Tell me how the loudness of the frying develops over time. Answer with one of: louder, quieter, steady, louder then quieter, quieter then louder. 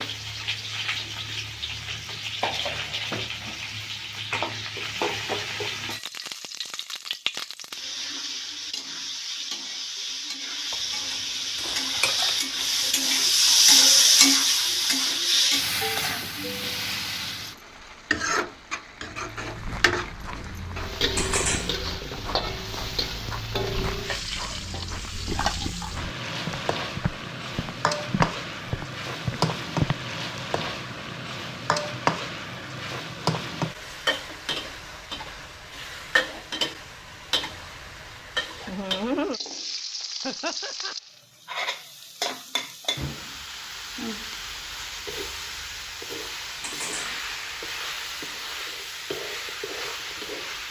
louder then quieter.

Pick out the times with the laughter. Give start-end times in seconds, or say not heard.
40.2-41.0.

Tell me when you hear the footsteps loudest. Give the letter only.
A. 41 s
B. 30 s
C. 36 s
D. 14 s
B.